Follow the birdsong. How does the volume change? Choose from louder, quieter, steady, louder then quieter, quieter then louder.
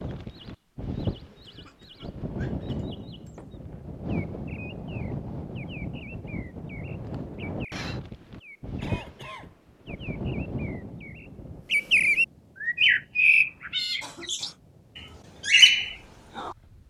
louder.